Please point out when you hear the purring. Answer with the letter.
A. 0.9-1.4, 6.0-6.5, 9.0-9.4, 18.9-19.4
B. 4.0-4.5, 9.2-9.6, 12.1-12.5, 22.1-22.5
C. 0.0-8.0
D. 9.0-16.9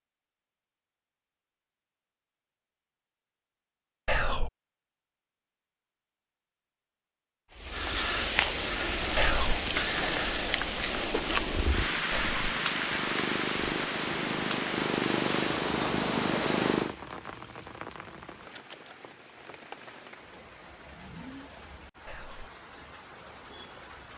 D.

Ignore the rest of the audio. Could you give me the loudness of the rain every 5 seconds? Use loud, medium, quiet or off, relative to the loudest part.
off, loud, loud, quiet, quiet.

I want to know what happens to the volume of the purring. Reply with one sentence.
The volume of the purring goes up.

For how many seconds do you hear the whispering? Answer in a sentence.
The whispering can be heard for 2 seconds in total.